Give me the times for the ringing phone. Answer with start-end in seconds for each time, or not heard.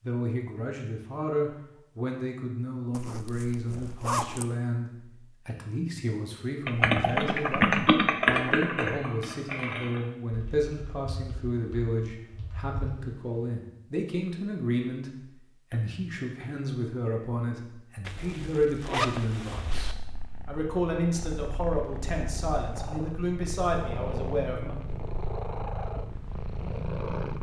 not heard.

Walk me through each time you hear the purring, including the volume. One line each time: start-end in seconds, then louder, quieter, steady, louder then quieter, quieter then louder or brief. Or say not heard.
19.7-27.3 louder.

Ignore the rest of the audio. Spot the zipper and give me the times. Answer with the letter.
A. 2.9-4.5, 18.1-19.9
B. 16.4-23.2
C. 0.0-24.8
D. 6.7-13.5
A.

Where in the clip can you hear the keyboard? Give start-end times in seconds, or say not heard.
6.7-13.5.